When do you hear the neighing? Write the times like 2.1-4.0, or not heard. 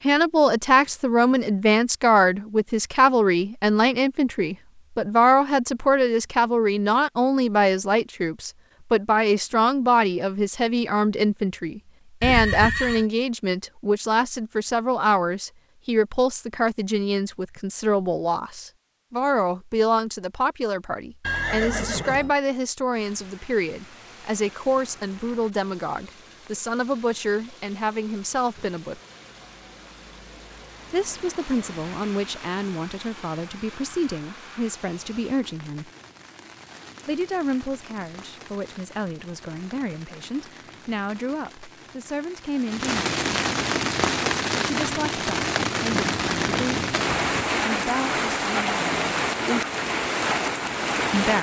12.2-13.1, 21.2-22.4, 45.9-47.5.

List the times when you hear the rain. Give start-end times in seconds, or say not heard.
22.9-51.3.